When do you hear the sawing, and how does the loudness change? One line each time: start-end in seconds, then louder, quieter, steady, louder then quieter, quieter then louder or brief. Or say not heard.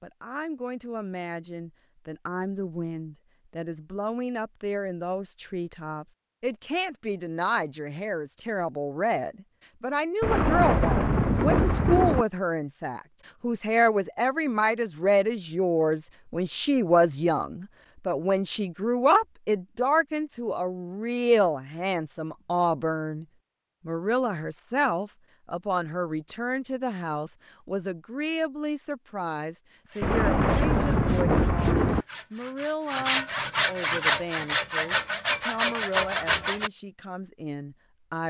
29.9-36.7 louder.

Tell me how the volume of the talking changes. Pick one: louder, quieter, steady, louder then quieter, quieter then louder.
louder then quieter.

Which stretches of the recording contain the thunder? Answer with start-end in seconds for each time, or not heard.
10.2-12.2, 30.0-32.0.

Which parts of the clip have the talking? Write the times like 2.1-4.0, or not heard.
0.0-23.2, 23.9-38.2.